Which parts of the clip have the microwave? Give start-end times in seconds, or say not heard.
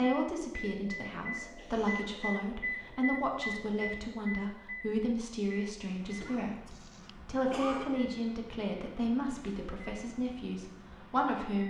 0.0-11.6.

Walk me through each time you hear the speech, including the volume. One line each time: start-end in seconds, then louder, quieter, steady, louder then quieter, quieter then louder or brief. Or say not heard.
0.0-11.6 steady.